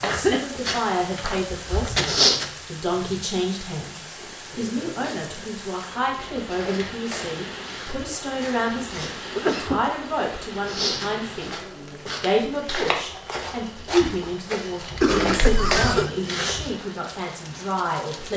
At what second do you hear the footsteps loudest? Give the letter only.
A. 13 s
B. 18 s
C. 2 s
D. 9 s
C.